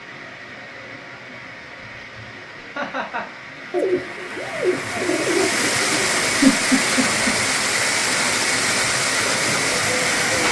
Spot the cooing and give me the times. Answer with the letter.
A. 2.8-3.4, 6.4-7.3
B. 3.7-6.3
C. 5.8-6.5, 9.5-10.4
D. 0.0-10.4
B.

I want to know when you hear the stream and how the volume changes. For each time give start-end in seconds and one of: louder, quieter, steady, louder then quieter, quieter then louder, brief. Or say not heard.
0.0-10.4 louder.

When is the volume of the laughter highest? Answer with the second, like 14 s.
7 s.